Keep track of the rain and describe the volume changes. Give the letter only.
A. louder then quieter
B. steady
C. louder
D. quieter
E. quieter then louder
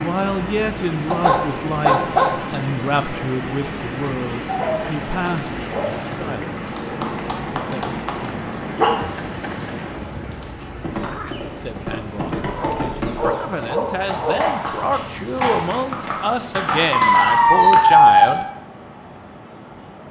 D.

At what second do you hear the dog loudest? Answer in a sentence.
The volume of the dog peaks at 18 seconds.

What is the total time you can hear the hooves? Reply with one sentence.
The hooves can be heard for 12 seconds in total.